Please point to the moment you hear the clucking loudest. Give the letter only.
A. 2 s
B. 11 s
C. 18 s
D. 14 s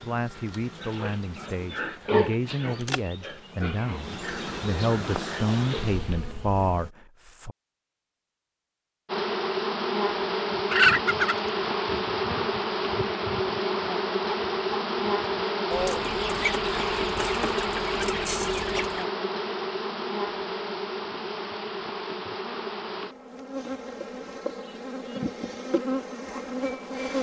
B.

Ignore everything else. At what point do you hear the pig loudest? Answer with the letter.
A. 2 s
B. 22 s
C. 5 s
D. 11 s
A.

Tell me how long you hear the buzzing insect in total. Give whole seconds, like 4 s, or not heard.
25 s.